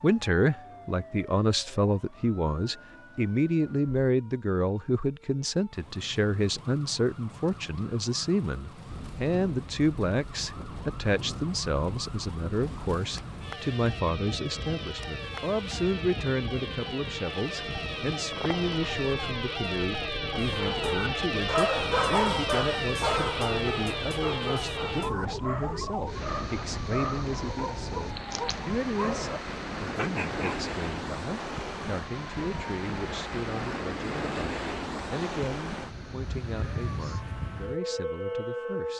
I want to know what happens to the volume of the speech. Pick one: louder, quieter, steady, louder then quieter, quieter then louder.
quieter.